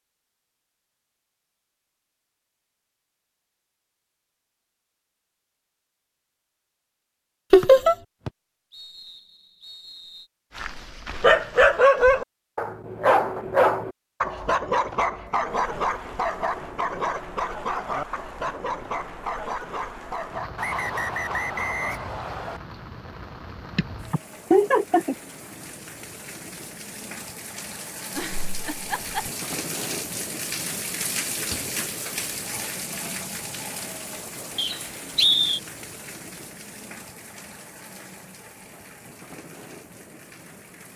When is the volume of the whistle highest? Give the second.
35 s.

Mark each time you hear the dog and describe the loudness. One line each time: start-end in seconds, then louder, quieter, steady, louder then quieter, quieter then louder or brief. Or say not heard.
10.6-22.0 quieter.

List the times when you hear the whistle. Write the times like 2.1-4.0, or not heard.
7.6-10.2, 20.6-22.6, 34.5-35.6.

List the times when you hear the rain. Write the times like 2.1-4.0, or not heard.
15.4-40.9.